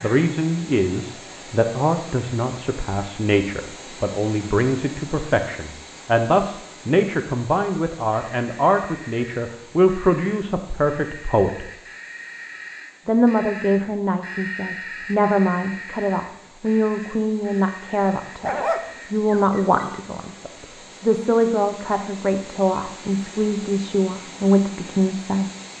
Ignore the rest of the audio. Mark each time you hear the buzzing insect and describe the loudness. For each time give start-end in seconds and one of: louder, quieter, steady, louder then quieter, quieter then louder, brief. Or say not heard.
not heard.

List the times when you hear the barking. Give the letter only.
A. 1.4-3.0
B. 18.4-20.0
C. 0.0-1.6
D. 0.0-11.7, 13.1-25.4
B.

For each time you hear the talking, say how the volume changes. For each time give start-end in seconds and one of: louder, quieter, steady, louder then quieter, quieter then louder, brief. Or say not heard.
0.0-11.7 steady
13.1-25.4 steady.